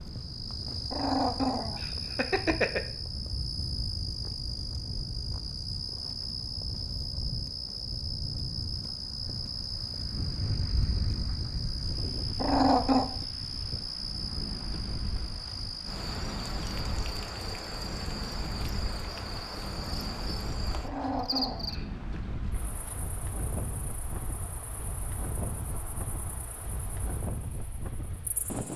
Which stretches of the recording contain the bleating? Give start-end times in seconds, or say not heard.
not heard.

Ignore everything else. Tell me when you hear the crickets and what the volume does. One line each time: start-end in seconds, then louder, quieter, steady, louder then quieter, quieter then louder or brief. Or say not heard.
0.0-28.7 quieter.